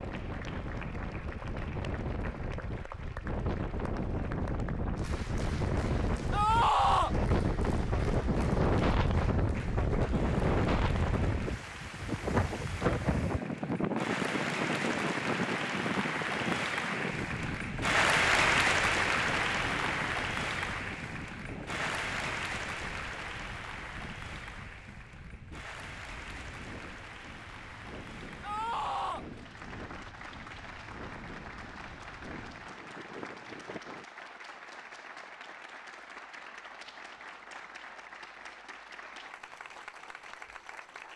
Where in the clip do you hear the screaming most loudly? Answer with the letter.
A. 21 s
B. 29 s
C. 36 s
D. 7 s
D.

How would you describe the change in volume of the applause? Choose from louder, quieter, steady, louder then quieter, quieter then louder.
louder then quieter.